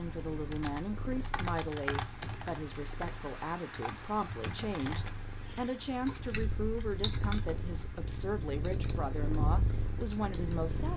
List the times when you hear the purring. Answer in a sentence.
You can hear the purring from 0.0 to 10.9 s.